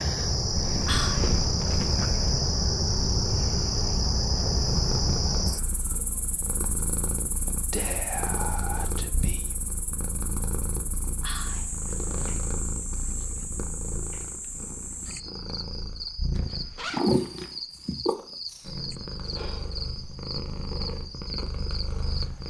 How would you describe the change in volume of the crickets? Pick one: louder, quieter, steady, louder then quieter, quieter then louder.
quieter.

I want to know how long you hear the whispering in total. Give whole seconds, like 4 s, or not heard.
3 s.